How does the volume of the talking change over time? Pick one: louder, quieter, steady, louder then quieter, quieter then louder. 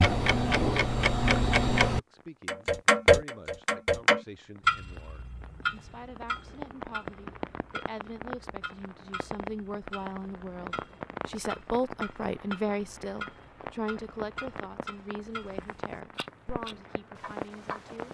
louder then quieter.